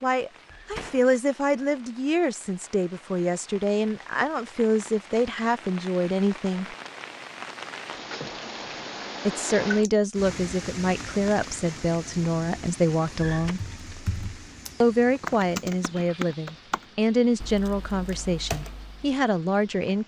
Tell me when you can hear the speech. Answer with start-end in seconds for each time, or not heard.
0.0-6.8, 9.2-13.6, 14.8-20.0.